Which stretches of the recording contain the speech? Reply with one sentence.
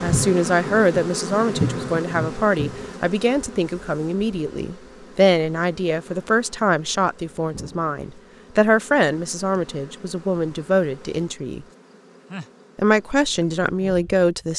You can hear the speech from 0.0 to 11.7 s and from 12.8 to 14.5 s.